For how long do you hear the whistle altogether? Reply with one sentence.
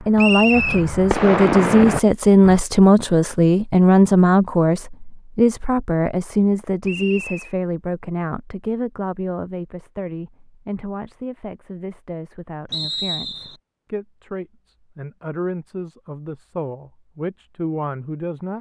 The whistle can be heard for 2 seconds in total.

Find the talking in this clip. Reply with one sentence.
You can hear the talking from 0.0 to 18.5 s.